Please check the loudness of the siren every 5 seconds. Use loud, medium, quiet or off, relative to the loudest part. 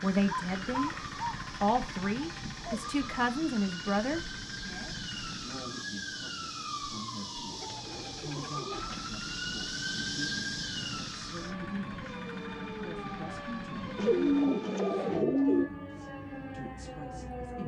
medium, loud, loud, loud.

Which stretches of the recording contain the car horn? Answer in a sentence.
You can't hear the car horn here.